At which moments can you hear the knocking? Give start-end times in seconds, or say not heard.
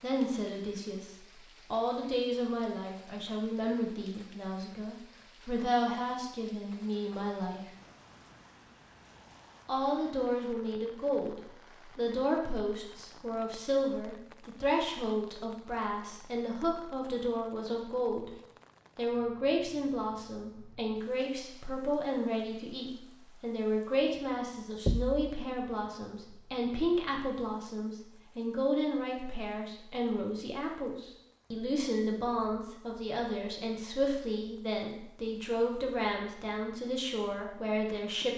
24.9-25.3.